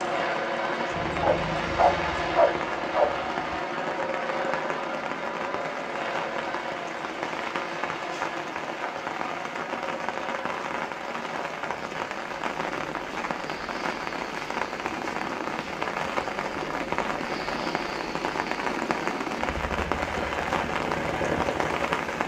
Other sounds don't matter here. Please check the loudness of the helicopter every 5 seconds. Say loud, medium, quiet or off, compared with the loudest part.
loud, medium, medium, medium, loud.